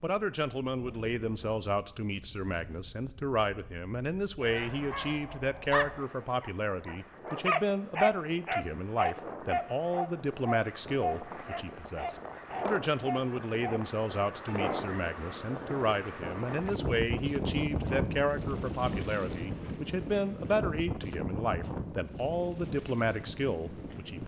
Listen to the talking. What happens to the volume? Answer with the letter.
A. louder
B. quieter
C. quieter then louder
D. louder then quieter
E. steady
E.